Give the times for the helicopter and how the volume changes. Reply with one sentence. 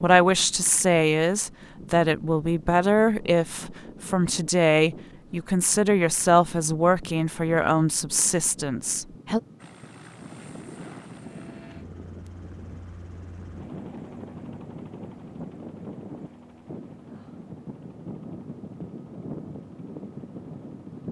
The helicopter can be heard from 9.6 to 21.0 s, getting quieter.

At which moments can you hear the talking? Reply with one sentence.
You can hear the talking from 0.0 to 9.4 s.